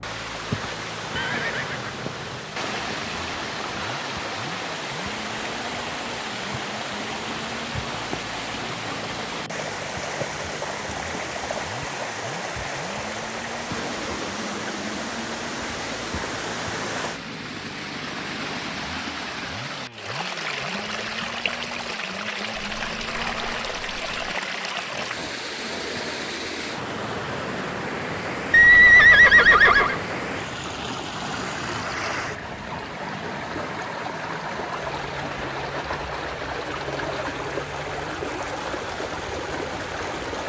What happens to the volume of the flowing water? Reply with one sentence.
The volume of the flowing water stays about the same.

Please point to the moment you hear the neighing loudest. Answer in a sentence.
The loudest moment of the neighing is at 29 seconds.